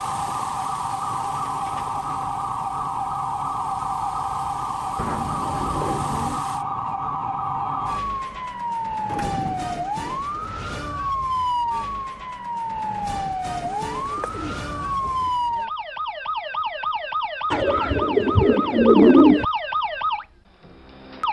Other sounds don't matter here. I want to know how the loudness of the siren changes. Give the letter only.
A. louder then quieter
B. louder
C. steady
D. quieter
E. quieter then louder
C.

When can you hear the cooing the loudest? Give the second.
19 s.